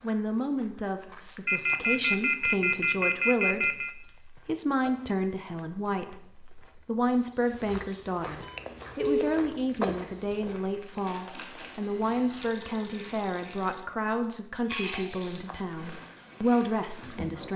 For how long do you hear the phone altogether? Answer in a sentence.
The phone can be heard for 5 seconds in total.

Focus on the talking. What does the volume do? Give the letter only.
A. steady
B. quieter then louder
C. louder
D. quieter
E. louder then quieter
A.